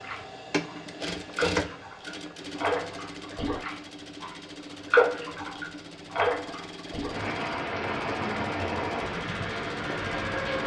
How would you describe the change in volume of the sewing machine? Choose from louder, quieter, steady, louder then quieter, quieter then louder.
quieter.